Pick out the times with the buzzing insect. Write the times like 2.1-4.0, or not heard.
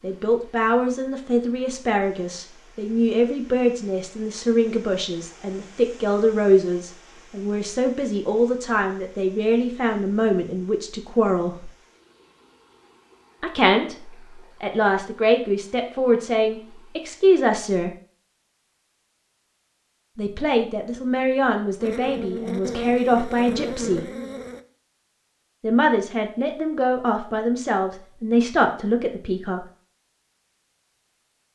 21.8-24.6.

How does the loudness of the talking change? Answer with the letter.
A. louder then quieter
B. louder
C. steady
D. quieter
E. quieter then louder
C.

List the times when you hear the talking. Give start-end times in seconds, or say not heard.
0.0-11.7, 13.4-17.9, 20.1-24.1, 25.6-29.6.